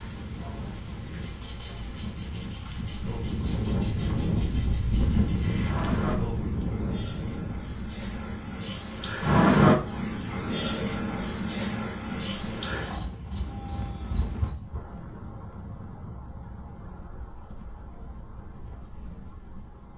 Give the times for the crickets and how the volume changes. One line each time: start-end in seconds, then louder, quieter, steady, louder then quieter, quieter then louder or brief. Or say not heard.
0.0-19.9 louder then quieter.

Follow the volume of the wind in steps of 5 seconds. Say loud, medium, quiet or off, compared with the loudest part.
loud, loud, medium, quiet.